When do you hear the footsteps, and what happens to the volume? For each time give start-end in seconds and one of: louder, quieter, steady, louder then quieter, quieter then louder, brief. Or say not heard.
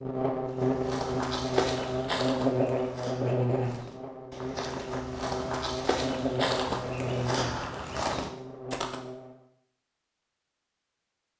0.6-9.0 quieter then louder.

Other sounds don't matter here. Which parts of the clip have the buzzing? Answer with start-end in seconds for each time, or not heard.
0.0-9.4.